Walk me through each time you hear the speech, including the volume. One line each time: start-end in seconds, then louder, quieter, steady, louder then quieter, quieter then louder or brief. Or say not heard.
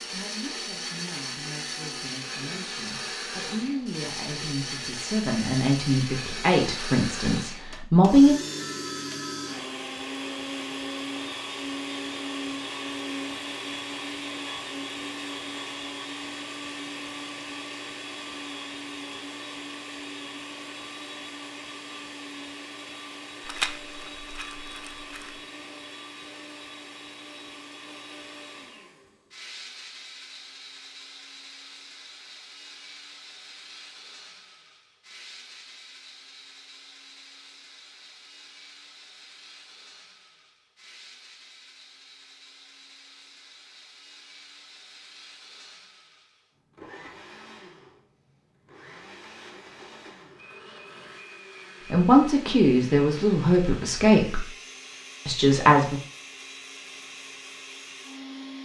0.1-8.3 louder
51.9-54.5 brief
55.2-56.0 brief.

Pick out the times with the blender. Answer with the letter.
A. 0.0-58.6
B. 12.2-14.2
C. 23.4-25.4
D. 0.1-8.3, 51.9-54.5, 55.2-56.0
A.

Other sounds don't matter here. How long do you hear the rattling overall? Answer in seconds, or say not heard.
2 s.